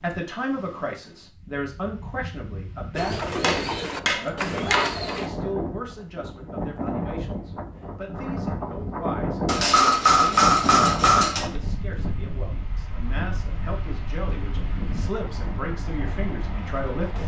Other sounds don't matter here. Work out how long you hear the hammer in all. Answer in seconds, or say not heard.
4 s.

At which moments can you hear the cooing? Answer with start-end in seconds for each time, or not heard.
3.0-5.3.